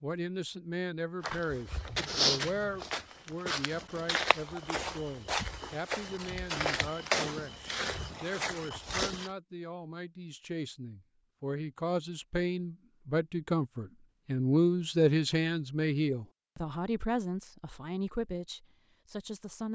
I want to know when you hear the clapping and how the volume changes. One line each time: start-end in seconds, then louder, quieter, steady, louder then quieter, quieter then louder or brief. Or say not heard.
not heard.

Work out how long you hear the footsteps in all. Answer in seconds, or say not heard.
8 s.